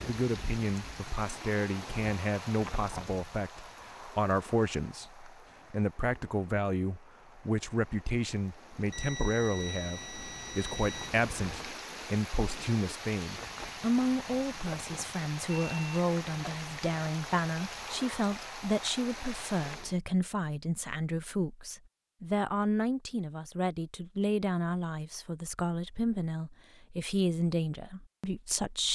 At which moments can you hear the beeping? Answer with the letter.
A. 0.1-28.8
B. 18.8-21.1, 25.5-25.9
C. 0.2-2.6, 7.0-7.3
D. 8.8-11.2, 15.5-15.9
D.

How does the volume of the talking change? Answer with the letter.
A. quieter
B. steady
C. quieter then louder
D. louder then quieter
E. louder
B.